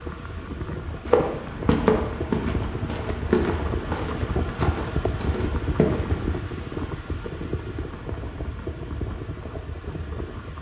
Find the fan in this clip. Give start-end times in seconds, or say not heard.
0.0-10.5.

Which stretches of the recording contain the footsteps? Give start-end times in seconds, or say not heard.
1.1-6.4.